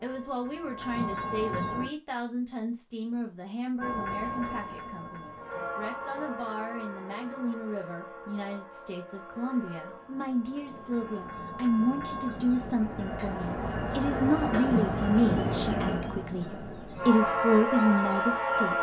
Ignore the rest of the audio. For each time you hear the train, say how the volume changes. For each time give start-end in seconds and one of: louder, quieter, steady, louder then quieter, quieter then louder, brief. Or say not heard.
0.0-1.9 brief
3.8-18.7 quieter then louder.